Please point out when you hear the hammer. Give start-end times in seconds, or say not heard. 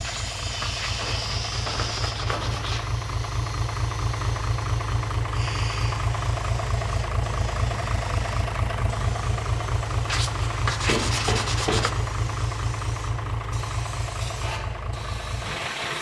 0.8-2.6, 10.8-12.2.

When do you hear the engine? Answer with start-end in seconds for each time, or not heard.
0.0-15.9.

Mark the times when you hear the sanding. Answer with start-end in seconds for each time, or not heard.
0.0-2.9, 10.1-11.9.